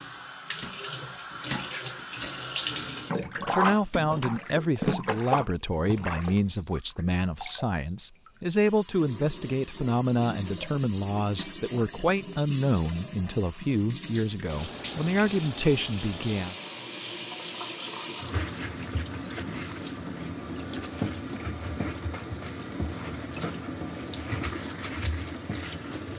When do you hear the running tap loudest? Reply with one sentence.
The loudest moment of the running tap is at 3 seconds.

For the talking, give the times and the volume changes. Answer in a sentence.
The talking can be heard from 3.2 to 16.6 s, at a steady volume.